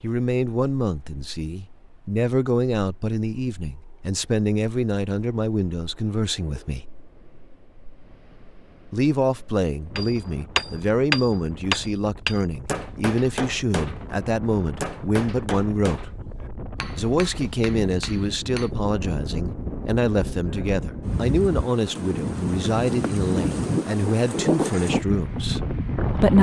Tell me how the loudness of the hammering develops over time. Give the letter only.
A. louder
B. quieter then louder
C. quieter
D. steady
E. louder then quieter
C.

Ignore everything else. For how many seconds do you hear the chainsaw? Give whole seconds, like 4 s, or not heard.
not heard.